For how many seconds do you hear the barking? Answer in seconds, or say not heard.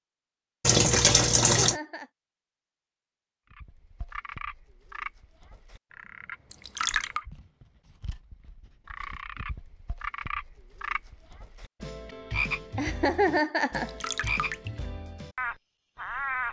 not heard.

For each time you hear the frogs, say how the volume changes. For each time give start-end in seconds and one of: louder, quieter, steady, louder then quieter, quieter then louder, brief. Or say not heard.
3.5-16.4 louder.